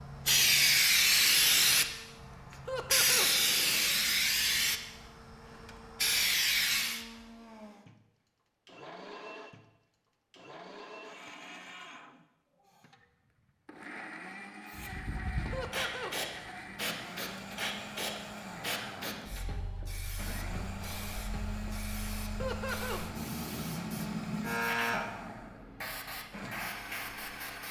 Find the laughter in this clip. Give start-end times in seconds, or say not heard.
2.6-3.3, 15.5-16.1, 22.4-23.0.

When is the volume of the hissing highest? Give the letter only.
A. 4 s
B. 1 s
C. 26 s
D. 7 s
B.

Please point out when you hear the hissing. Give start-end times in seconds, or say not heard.
0.0-7.0, 14.7-27.6.